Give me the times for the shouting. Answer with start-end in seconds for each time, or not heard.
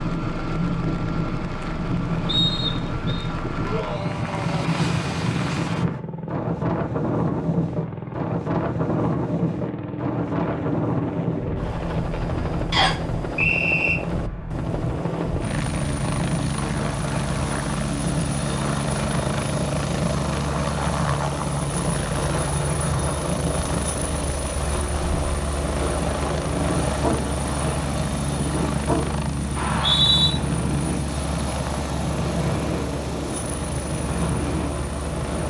3.6-4.9.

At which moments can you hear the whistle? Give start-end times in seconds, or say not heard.
2.2-3.2, 12.7-13.9, 29.6-30.3.